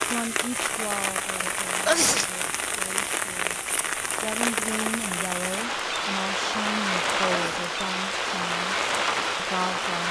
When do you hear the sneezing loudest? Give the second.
2 s.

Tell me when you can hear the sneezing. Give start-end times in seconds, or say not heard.
1.9-2.3, 7.2-7.7.